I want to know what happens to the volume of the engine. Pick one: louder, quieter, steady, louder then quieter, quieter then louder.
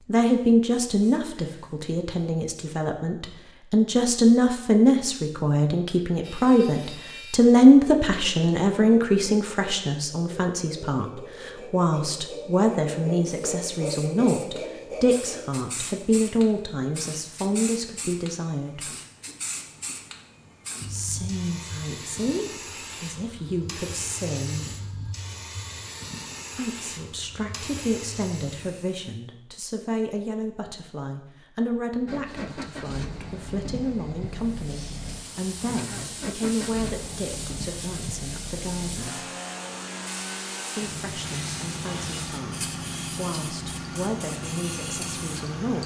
steady.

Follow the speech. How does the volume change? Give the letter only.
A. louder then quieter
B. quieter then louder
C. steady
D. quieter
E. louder
D.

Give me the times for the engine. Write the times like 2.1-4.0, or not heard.
32.0-45.8.